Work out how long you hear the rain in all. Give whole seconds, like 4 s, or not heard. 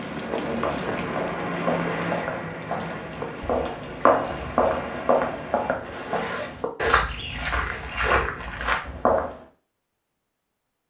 6 s.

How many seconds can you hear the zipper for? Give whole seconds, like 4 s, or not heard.
2 s.